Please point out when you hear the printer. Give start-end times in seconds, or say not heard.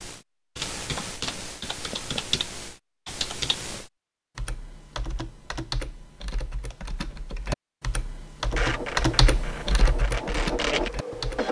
8.5-11.4.